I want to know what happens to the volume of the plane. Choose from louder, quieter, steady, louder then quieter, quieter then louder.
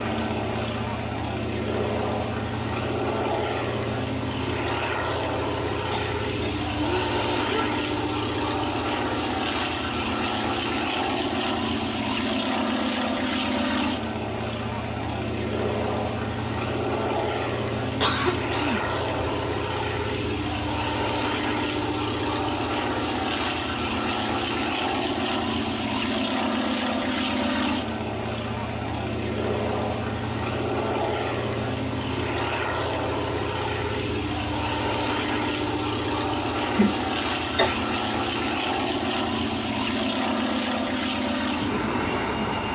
steady.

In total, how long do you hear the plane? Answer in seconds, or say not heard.
43 s.